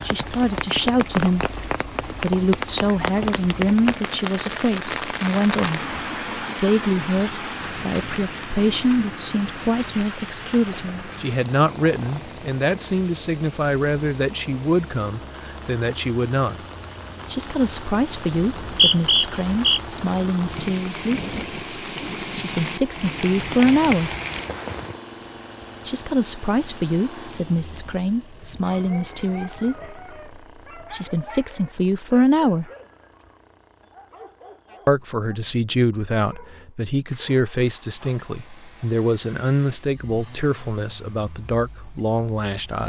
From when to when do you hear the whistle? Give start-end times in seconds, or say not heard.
18.4-19.8.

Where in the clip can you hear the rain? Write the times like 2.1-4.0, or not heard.
0.0-25.0.